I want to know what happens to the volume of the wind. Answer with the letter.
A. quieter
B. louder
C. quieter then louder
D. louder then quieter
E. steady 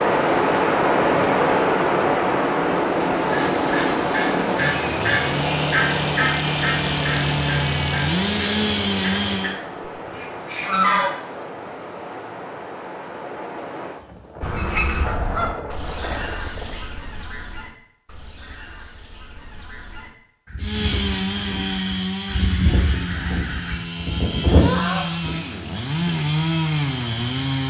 A.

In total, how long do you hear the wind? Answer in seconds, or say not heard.
17 s.